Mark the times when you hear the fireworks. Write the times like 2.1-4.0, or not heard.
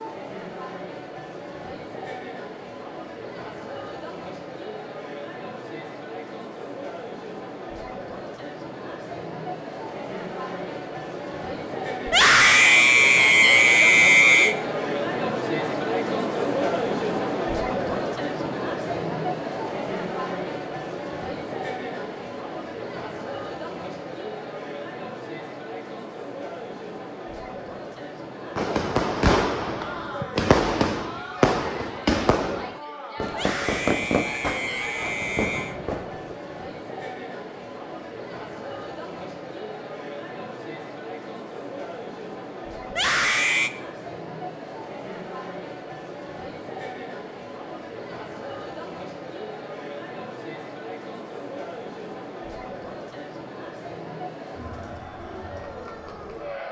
28.6-36.4.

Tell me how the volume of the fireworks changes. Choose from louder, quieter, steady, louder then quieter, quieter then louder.
quieter.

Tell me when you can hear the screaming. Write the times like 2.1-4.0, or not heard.
12.1-14.6, 33.3-35.8, 42.9-43.7.